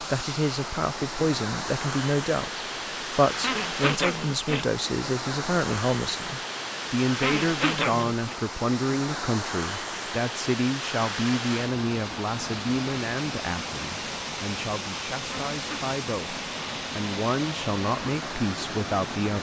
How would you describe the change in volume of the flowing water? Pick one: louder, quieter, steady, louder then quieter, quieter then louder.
steady.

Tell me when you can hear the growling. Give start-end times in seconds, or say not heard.
3.4-4.7, 7.2-8.3, 15.2-15.9.